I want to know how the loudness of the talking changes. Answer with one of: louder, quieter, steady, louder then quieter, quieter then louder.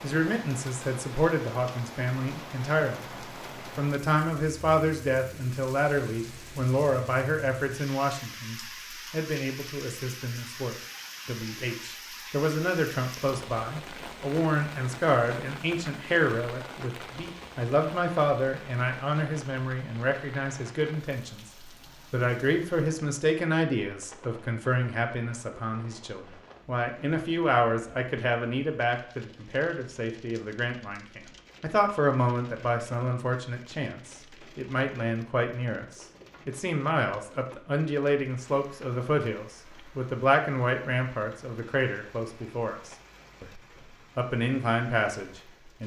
steady.